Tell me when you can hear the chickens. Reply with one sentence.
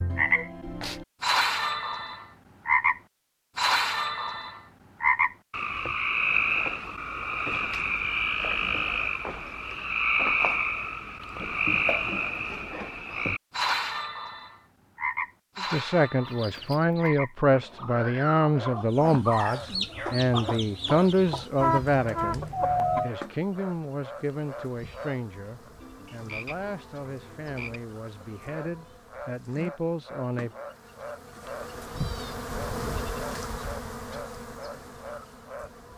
You can hear the chickens from 16.2 to 23.1 s.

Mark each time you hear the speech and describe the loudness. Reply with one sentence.
You can hear the speech from 15.6 to 30.5 s, getting quieter.